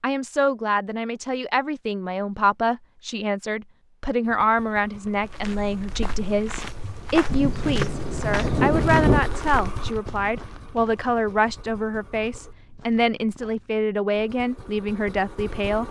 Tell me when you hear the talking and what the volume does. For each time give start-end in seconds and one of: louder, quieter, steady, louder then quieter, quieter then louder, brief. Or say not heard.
0.0-15.8 steady.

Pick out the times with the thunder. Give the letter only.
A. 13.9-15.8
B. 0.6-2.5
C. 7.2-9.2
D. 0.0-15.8
C.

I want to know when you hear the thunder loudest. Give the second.
9 s.